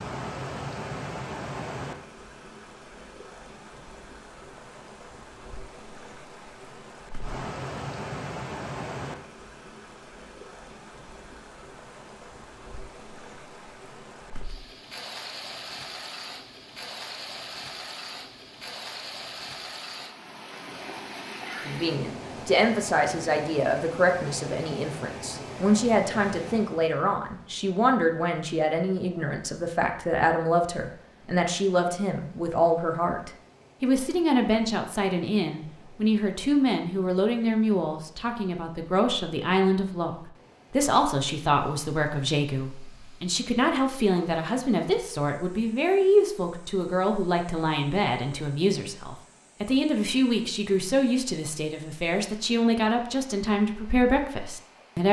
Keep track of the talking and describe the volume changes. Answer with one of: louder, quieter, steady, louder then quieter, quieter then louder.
steady.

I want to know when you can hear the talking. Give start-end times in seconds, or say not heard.
21.6-55.0.